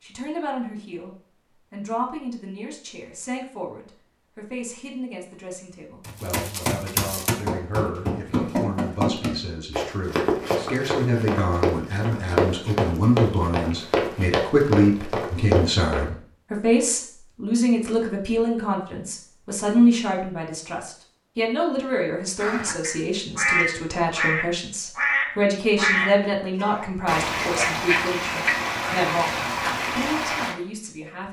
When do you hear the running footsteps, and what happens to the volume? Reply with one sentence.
The running footsteps can be heard from 6.0 to 16.1 s, at a steady volume.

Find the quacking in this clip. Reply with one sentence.
The quacking can be heard from 22.4 to 30.6 s.